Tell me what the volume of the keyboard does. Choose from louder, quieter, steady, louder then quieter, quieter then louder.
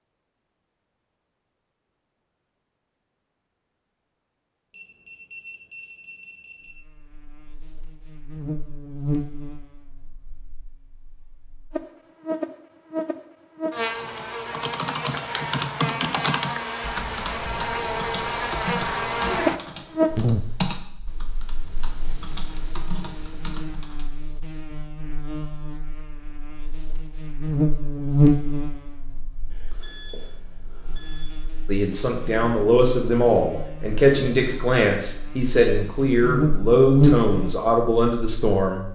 quieter.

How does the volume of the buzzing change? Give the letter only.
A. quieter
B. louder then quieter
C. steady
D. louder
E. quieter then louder
D.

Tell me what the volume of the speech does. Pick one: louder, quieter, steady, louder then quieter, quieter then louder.
steady.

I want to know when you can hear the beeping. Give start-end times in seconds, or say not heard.
4.7-6.7, 29.5-31.2.